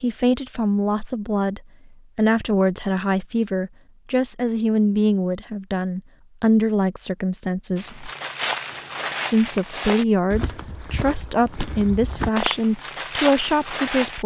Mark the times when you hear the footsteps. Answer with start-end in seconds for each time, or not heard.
7.8-14.2.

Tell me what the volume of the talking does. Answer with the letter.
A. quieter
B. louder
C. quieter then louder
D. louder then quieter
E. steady
E.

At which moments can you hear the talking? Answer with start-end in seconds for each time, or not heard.
0.0-8.1, 9.3-14.2.